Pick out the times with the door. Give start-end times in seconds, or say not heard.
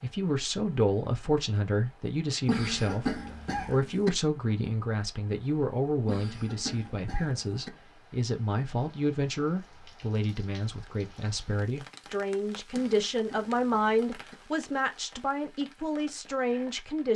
not heard.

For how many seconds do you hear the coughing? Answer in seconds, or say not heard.
5 s.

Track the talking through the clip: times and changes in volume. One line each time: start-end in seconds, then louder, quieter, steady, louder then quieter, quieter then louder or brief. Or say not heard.
0.0-17.1 steady.